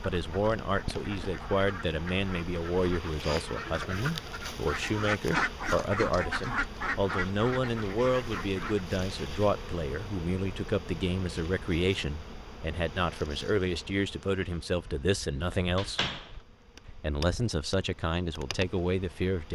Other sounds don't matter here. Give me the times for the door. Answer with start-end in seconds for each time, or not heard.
15.4-16.4.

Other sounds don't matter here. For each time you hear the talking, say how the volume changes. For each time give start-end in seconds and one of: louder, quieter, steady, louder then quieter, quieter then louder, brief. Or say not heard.
0.0-16.1 steady
16.9-19.4 brief.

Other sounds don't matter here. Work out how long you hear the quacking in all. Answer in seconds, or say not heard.
9 s.